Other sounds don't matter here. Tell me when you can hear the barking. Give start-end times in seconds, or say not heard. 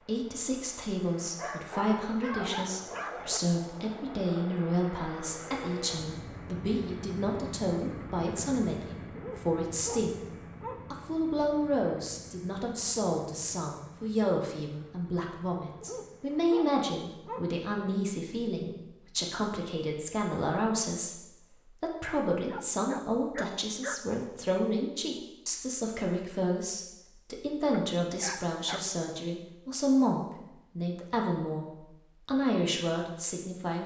1.4-3.4, 9.2-11.1, 15.8-18.0, 22.4-24.0, 27.7-29.1.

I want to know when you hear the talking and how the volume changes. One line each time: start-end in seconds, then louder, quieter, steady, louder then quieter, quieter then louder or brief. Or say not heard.
0.0-10.2 steady
10.9-33.8 steady.